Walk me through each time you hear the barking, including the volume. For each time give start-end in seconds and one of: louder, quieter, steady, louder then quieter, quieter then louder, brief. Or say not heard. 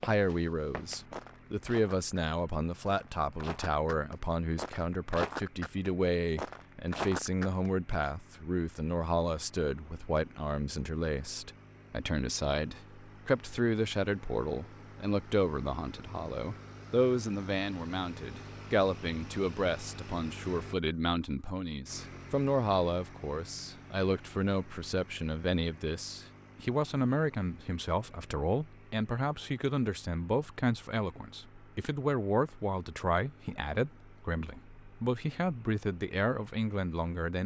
not heard.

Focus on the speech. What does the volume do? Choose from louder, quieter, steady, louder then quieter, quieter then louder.
steady.